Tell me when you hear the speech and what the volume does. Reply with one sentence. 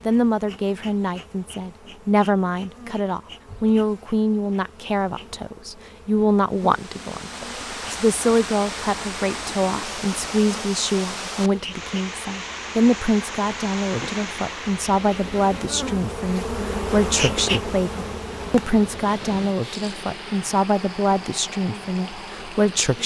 You can hear the speech from 0.1 to 23.0 s, at a steady volume.